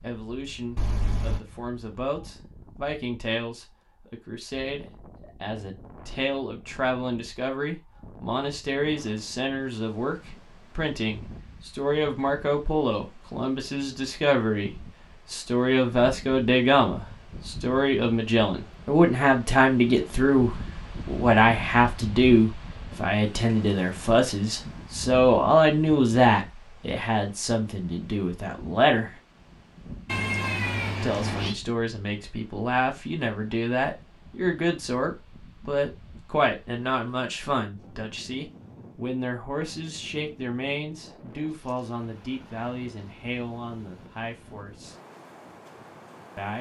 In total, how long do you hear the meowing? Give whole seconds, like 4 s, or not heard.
2 s.